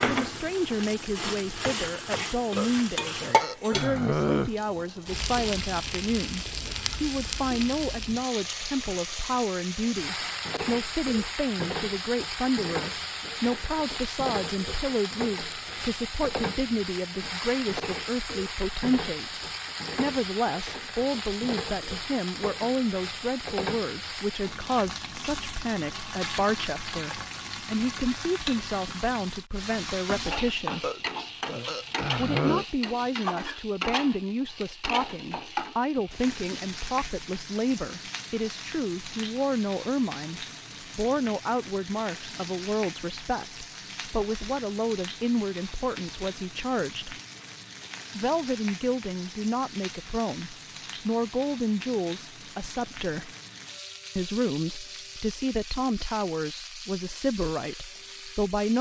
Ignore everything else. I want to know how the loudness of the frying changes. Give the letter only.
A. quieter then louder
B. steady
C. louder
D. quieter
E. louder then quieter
D.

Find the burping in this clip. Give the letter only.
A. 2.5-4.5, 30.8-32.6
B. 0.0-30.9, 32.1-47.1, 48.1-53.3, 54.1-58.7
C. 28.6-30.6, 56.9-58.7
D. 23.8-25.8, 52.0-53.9
A.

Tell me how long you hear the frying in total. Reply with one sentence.
You can hear the frying for 59 seconds altogether.